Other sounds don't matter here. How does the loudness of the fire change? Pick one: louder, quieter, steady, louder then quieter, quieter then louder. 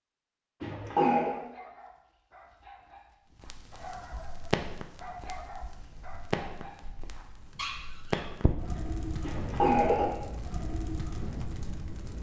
steady.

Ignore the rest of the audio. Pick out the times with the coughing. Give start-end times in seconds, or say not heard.
0.6-1.4, 9.2-10.2.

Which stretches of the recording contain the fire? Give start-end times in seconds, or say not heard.
3.4-12.1.